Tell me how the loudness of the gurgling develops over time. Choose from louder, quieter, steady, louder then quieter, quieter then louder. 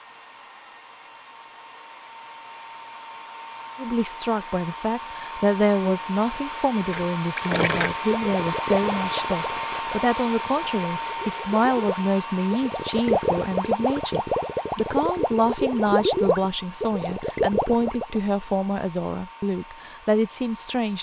quieter then louder.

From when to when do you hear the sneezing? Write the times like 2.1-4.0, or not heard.
not heard.